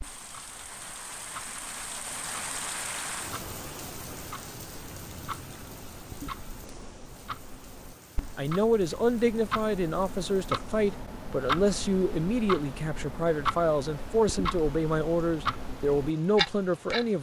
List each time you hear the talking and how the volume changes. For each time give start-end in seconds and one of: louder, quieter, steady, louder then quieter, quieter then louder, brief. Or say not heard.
8.3-17.1 steady.